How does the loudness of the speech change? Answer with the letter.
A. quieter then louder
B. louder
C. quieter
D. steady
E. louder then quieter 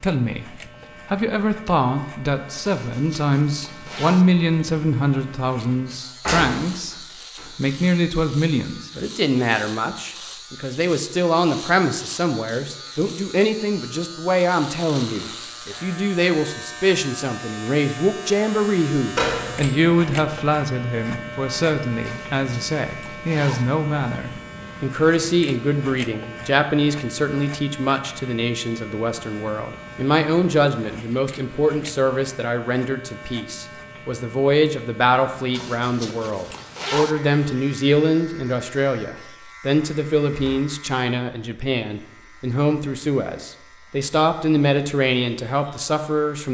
D.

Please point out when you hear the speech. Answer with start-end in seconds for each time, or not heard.
0.0-7.0, 7.5-46.4.